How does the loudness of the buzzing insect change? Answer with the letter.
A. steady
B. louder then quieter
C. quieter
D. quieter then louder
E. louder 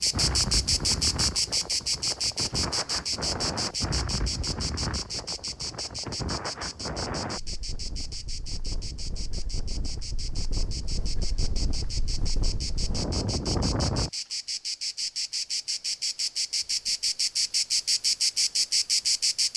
D.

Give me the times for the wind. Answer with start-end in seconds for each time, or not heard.
0.0-14.1.